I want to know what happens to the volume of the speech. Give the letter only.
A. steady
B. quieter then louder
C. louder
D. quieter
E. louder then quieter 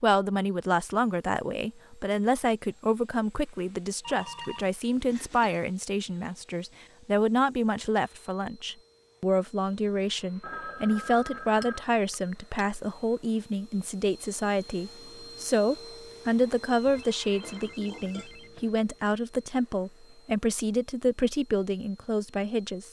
A.